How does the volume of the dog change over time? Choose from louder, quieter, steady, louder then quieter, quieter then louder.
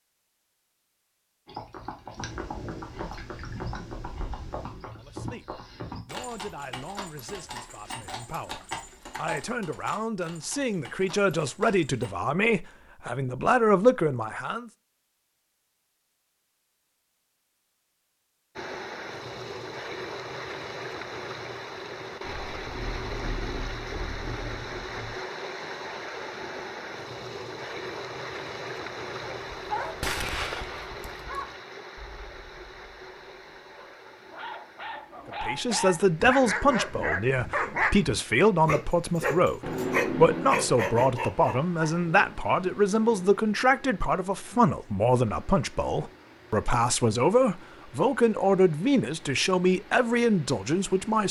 quieter then louder.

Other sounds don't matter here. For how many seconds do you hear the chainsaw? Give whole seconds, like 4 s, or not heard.
not heard.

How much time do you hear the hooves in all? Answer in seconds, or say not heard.
11 s.